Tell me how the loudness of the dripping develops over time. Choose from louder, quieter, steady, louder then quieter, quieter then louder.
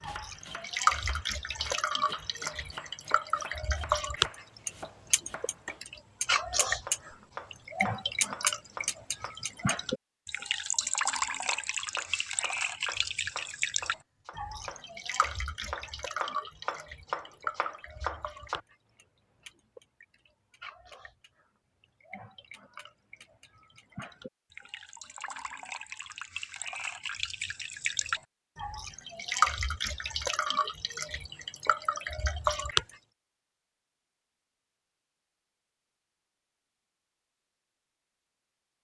quieter then louder.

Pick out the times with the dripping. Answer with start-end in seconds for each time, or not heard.
0.0-32.9.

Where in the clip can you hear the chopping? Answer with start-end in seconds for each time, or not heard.
0.0-9.3, 11.4-18.6.